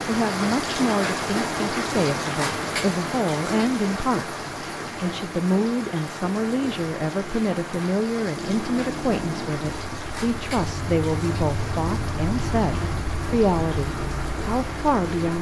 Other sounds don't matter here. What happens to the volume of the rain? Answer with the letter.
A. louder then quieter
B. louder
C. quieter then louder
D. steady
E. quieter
E.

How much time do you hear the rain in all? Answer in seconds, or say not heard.
15 s.